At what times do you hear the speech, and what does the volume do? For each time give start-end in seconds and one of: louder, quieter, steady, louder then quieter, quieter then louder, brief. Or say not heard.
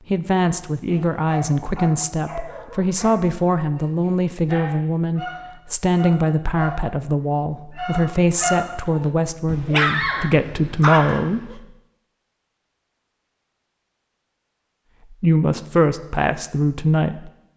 0.1-11.6 steady
15.2-17.5 brief.